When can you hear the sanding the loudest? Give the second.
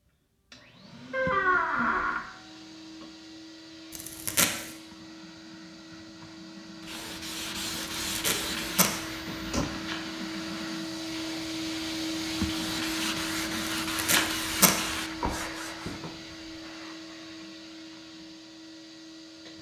14 s.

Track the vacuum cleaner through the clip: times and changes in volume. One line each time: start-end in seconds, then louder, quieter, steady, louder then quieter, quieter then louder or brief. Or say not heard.
0.0-19.5 louder then quieter.